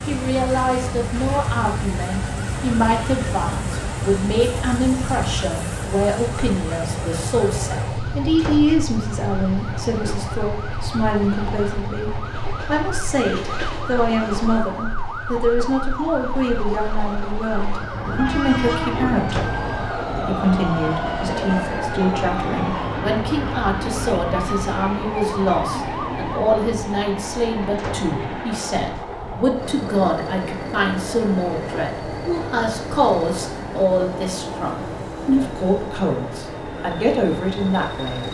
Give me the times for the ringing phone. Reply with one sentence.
You can't hear the ringing phone here.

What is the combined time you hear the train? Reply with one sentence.
You can hear the train for 38 seconds altogether.